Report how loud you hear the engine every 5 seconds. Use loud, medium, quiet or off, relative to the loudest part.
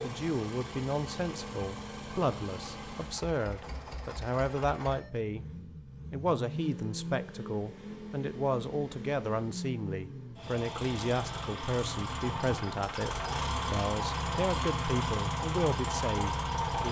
medium, medium, loud, loud.